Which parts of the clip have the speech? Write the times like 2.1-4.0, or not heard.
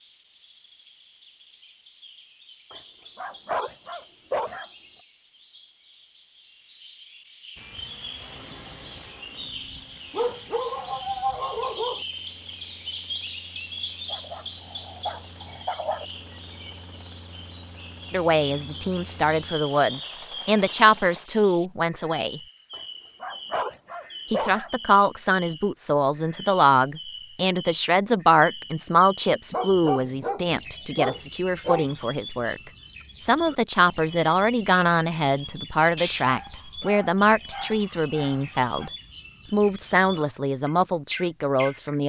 18.1-22.4, 24.3-32.6, 33.2-38.9, 39.5-42.0.